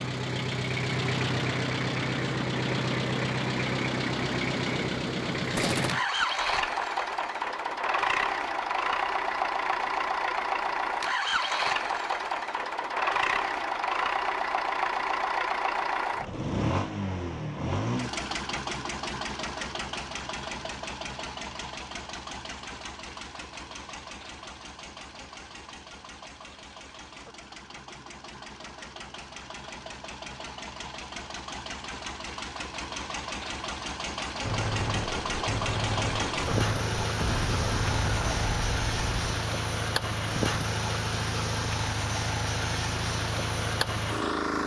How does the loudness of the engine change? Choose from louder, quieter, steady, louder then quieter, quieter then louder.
quieter then louder.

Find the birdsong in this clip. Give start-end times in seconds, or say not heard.
not heard.